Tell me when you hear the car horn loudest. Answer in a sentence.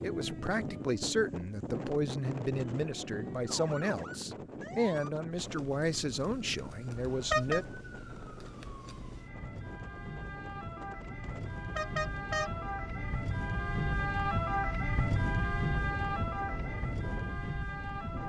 The volume of the car horn peaks at 7 seconds.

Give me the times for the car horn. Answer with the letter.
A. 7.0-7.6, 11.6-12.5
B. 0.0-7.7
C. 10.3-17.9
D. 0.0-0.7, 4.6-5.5
A.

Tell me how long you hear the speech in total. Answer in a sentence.
The speech can be heard for 8 seconds in total.